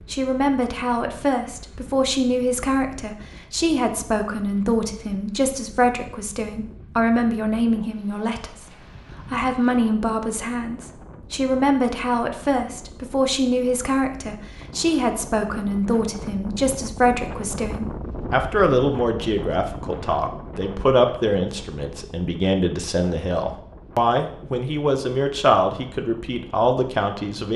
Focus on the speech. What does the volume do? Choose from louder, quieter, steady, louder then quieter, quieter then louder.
steady.